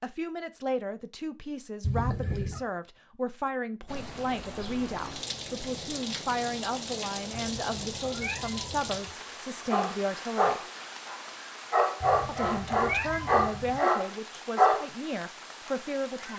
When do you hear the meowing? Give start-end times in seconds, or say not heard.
1.8-2.6, 7.3-9.0, 12.0-13.8.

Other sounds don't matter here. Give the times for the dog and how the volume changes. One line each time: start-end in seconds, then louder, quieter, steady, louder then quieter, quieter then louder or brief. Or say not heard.
9.7-14.8 steady.